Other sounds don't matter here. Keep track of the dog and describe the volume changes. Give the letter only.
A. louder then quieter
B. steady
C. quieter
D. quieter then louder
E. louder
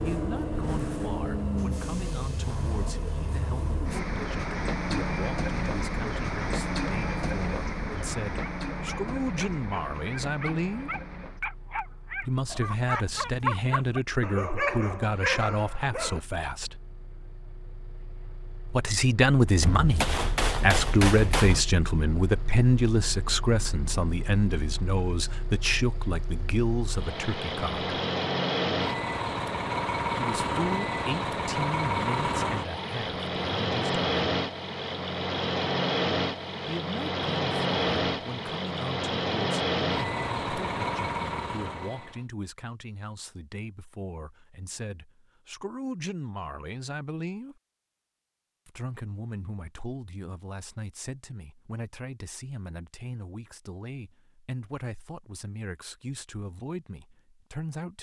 E.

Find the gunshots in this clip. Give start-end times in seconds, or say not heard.
19.6-21.6.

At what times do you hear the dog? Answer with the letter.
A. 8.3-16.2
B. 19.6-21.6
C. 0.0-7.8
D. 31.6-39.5
A.